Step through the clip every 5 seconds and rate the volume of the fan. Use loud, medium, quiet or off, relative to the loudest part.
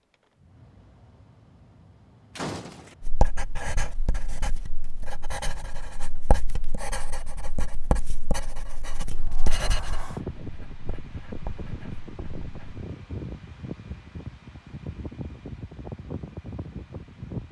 quiet, quiet, loud, loud.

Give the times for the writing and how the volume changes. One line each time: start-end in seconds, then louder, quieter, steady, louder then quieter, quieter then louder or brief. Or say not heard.
3.0-12.8 quieter.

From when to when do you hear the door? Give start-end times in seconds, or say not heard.
2.4-3.0, 9.1-10.2.